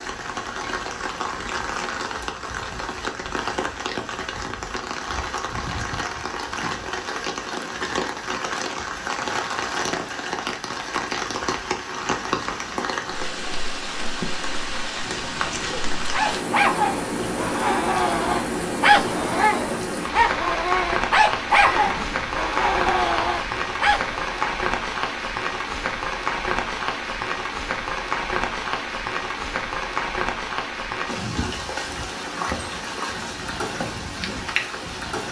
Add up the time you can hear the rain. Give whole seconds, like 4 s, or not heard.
35 s.